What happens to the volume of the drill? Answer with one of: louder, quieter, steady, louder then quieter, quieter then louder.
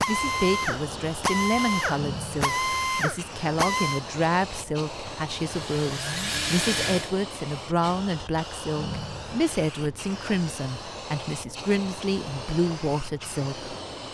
quieter then louder.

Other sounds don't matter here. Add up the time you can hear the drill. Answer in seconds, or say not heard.
7 s.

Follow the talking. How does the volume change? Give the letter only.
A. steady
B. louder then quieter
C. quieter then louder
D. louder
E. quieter
A.